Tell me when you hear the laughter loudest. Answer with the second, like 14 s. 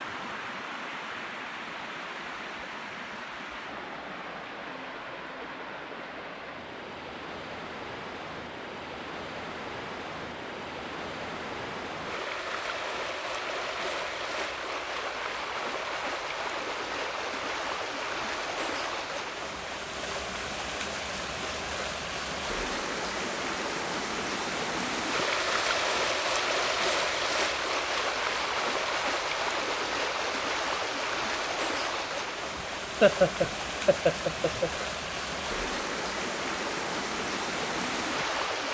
33 s.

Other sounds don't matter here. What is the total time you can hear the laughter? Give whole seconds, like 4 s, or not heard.
2 s.